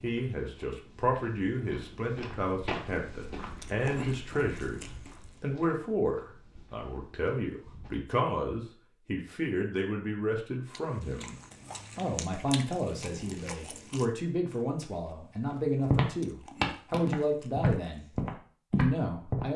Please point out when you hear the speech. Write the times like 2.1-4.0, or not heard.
0.0-11.3, 11.9-18.1, 18.8-19.5.